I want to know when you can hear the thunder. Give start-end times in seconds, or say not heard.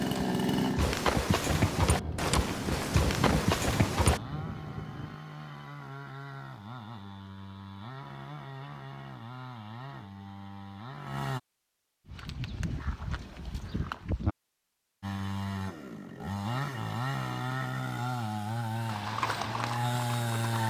1.4-5.2.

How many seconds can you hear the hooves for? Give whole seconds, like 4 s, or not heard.
8 s.